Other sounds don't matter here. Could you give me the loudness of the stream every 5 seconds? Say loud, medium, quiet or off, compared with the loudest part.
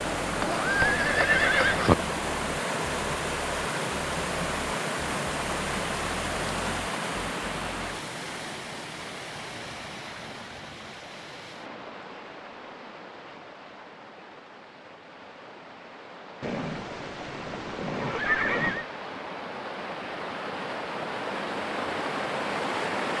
loud, loud, quiet, medium, loud.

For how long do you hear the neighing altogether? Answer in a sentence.
The neighing can be heard for 4 seconds in total.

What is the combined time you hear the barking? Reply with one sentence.
The barking can't be heard in this clip.